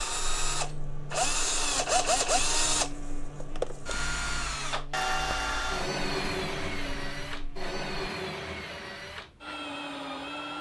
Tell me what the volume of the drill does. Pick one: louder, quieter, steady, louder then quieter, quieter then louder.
quieter.